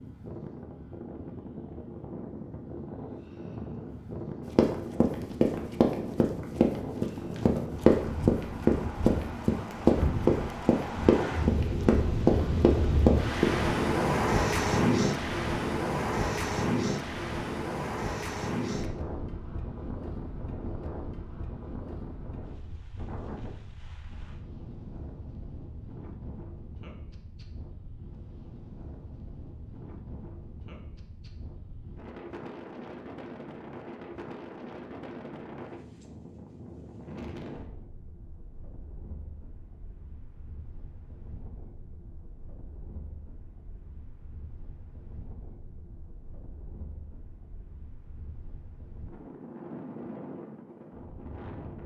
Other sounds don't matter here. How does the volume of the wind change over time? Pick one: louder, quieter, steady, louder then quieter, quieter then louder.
louder then quieter.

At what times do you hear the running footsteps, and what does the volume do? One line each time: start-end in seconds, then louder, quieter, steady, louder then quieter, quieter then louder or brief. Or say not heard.
4.5-13.7 steady.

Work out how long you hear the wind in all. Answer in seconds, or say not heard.
52 s.